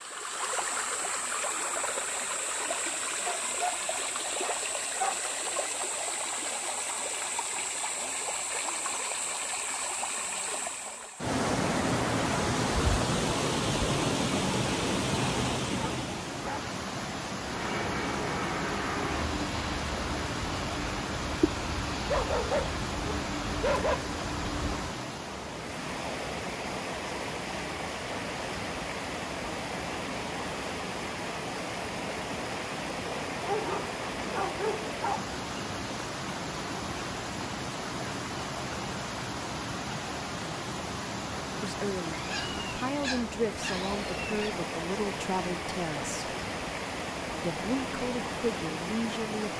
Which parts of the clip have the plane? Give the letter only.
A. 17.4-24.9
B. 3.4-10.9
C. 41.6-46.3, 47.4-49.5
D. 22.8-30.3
A.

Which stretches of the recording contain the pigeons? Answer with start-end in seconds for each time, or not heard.
not heard.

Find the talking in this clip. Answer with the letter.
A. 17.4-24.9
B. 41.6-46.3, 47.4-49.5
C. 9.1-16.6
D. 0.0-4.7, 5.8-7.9
B.